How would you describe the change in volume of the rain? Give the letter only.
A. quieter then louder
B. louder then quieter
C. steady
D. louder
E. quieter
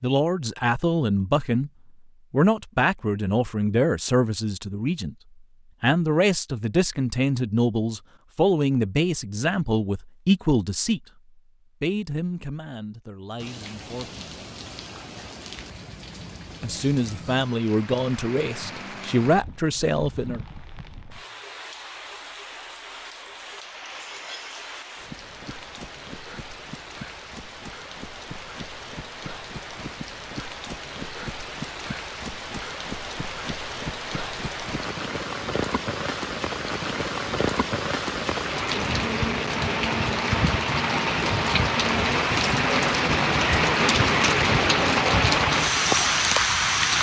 D.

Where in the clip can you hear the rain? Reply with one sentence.
The rain can be heard from 13.3 to 46.9 s.